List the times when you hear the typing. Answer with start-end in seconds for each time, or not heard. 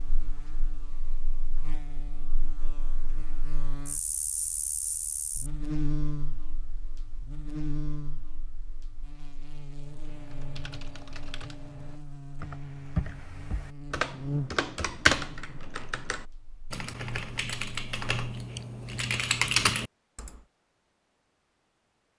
9.8-20.4.